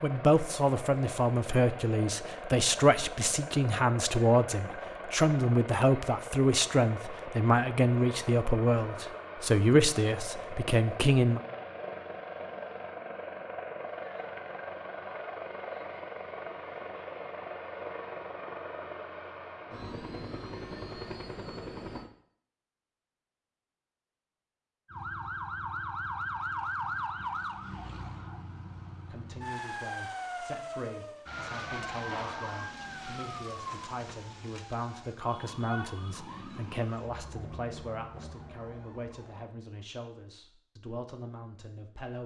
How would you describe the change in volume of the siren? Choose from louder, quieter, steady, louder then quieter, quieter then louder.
quieter.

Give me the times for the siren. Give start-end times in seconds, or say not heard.
24.9-39.5.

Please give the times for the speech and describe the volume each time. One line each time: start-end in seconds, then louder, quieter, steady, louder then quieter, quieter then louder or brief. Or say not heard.
0.0-11.4 steady
29.1-42.2 louder then quieter.